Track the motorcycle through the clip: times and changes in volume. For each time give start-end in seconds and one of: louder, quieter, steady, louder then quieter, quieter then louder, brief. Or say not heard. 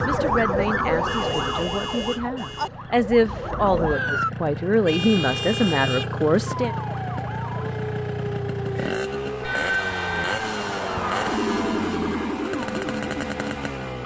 0.0-14.0 louder.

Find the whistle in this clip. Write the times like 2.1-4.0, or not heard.
not heard.